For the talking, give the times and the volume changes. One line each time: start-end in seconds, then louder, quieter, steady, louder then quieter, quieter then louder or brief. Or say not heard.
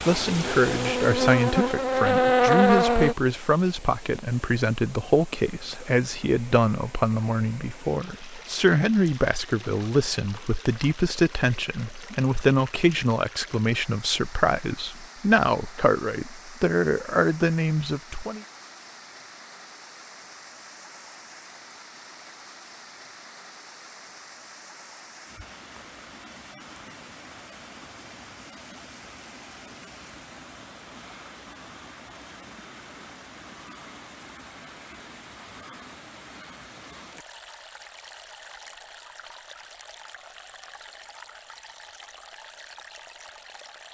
0.1-18.4 steady.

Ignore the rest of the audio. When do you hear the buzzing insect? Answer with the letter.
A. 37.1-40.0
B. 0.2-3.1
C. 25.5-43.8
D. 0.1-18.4
B.